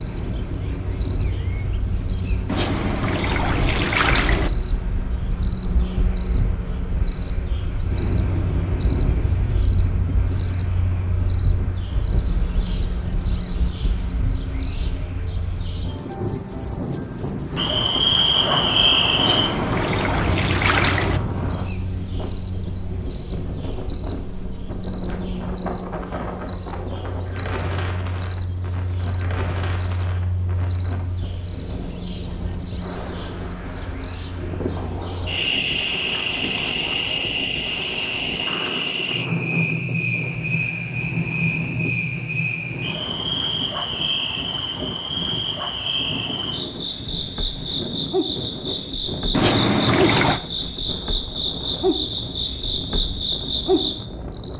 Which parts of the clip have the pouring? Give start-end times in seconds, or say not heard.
2.5-4.5, 19.1-21.2, 49.3-50.4.